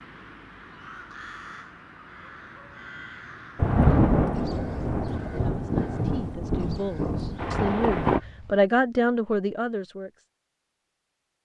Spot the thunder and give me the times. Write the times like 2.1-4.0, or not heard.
3.5-8.2.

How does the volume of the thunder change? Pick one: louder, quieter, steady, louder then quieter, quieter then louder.
quieter.